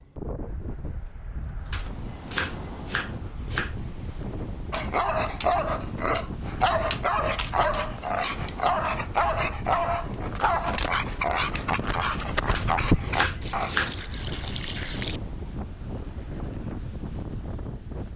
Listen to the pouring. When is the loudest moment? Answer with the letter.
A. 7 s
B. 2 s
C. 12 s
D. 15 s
D.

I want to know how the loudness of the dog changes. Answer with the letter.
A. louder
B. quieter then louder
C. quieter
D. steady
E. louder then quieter
D.